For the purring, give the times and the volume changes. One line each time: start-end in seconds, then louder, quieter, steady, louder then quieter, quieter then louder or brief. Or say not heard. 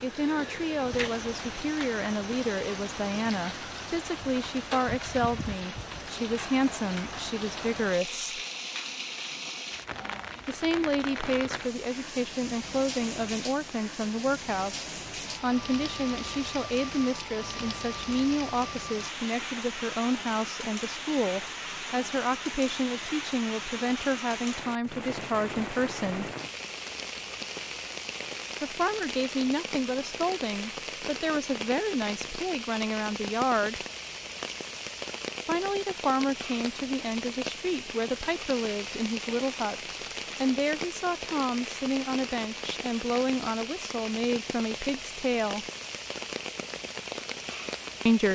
not heard.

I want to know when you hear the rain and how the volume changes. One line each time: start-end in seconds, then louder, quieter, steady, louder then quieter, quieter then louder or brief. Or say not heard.
0.0-48.3 steady.